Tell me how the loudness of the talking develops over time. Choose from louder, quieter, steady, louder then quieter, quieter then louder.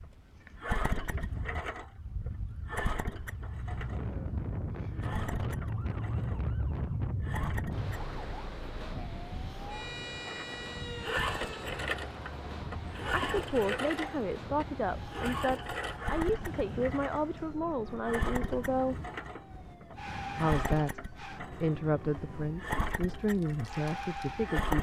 steady.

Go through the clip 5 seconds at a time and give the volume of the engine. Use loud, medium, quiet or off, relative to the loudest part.
loud, medium, loud, loud, loud.